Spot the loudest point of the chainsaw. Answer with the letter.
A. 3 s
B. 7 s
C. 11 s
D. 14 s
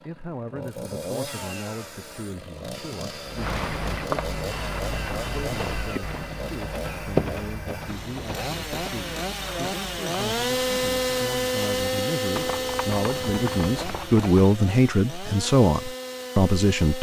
C.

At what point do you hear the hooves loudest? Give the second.
7 s.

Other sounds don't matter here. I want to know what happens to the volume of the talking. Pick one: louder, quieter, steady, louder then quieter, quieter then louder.
louder.